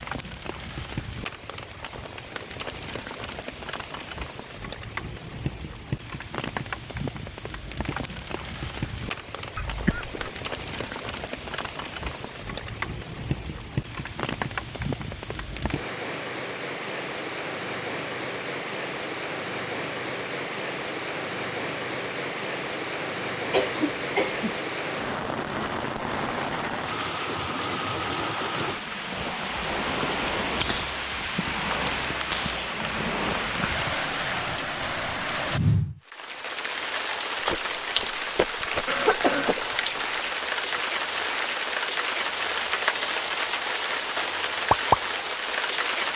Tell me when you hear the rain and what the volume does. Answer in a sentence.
The rain can be heard from 0.0 to 46.1 s, getting louder.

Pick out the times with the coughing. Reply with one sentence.
You can hear the coughing from 9.6 to 10.3 s, from 23.5 to 24.6 s and from 38.9 to 40.8 s.